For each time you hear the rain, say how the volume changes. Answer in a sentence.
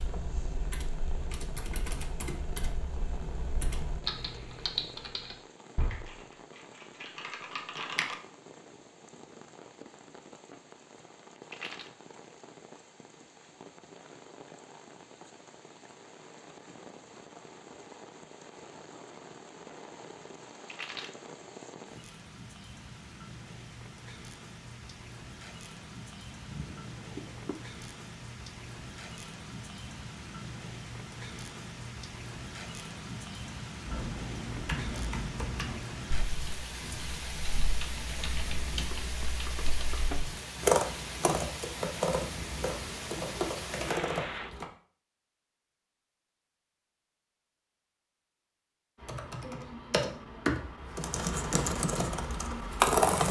The rain can be heard from 0.0 to 44.5 s, getting louder.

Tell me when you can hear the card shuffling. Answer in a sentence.
You can hear the card shuffling from 10.1 to 11.9 s, from 19.2 to 21.1 s and from 39.6 to 40.7 s.